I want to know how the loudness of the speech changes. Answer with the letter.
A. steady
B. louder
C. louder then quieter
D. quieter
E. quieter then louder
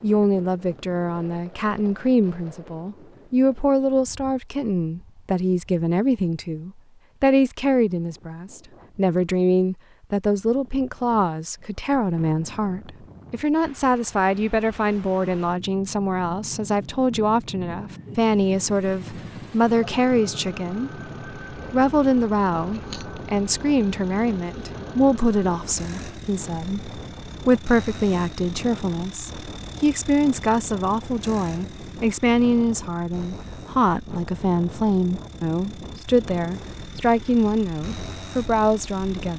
A.